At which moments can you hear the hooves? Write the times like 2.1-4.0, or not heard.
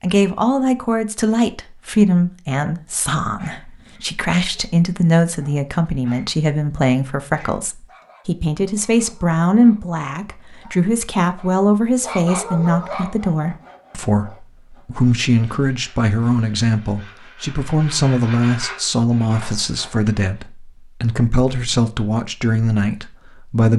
not heard.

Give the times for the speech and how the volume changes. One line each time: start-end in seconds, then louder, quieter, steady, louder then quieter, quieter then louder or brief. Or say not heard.
0.0-23.7 steady.